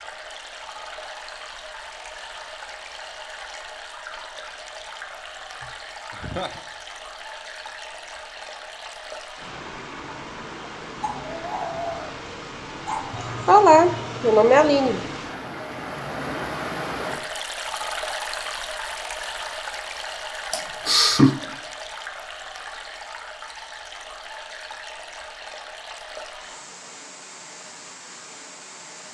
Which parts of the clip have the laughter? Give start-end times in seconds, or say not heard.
5.6-6.6, 13.1-15.1, 20.5-21.4.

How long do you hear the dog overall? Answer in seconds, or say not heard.
2 s.